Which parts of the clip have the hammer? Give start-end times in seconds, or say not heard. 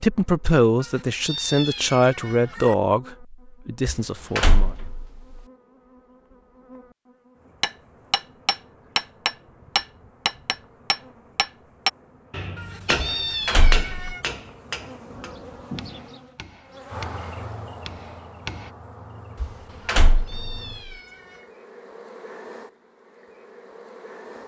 7.6-18.7.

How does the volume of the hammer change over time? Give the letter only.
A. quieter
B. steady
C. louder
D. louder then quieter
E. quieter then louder
A.